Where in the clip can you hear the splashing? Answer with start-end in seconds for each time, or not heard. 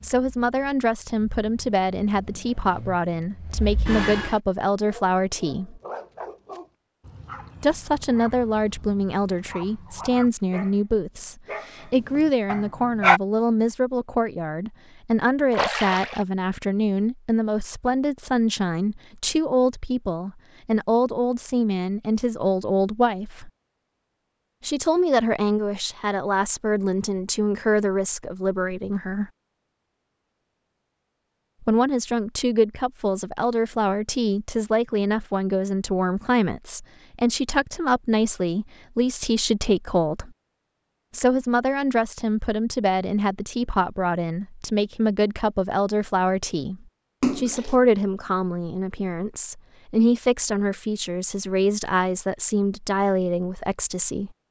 15.5-16.2, 47.2-47.8.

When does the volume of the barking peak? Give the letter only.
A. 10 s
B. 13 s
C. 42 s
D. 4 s
B.